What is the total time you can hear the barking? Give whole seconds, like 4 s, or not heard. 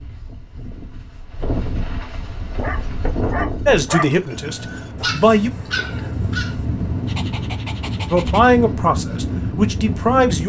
6 s.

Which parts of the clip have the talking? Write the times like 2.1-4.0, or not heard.
3.6-5.5, 8.1-10.4.